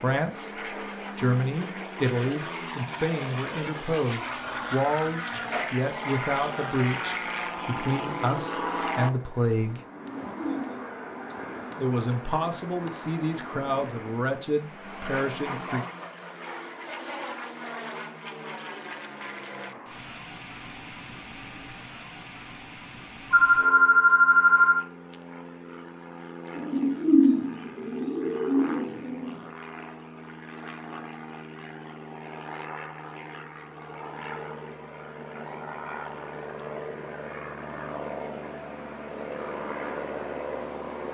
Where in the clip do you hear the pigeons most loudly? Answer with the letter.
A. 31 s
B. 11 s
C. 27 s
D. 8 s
C.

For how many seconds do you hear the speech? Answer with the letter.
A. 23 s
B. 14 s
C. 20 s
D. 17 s
B.